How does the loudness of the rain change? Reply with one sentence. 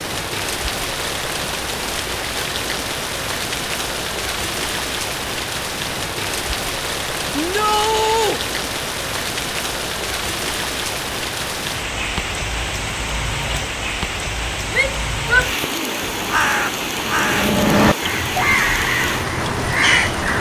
The volume of the rain stays about the same.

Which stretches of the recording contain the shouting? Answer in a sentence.
You can hear the shouting from 7.3 to 8.4 s and from 14.7 to 16.0 s.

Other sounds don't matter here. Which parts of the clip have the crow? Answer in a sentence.
You can hear the crow from 16.0 to 20.3 s.